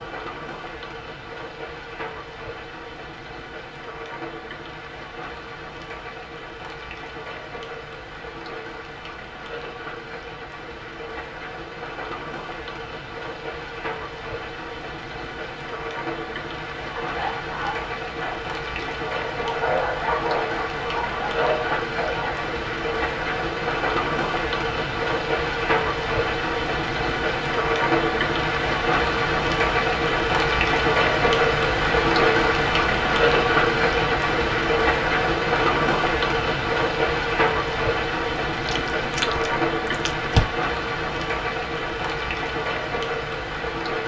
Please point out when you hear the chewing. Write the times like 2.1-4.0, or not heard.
38.6-40.4.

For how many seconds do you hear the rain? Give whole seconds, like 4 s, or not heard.
44 s.